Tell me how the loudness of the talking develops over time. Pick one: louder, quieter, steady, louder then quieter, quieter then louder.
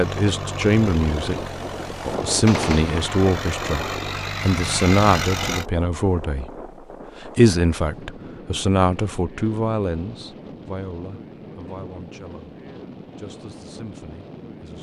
quieter.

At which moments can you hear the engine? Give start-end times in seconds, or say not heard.
0.0-5.7.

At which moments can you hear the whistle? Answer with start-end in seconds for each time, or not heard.
not heard.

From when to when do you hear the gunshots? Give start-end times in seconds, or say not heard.
2.5-3.1.